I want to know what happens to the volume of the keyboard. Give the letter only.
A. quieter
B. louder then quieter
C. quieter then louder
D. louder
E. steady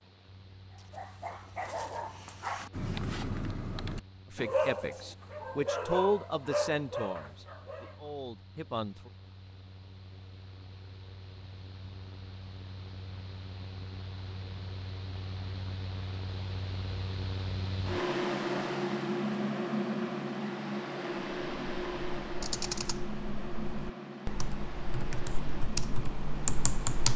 C.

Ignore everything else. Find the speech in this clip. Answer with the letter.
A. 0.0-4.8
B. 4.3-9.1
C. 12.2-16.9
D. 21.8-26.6
B.